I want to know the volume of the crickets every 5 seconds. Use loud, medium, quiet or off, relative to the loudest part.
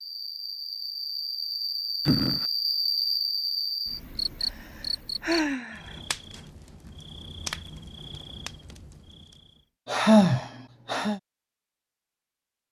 loud, medium, off.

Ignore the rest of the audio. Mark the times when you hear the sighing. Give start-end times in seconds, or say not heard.
2.0-2.5, 4.4-6.0, 9.8-11.2.